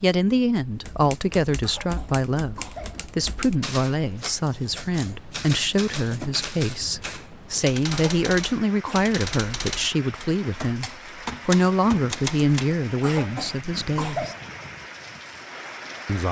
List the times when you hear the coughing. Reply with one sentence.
You can hear the coughing from 1.6 to 3.0 s, from 7.9 to 9.1 s and from 13.0 to 14.4 s.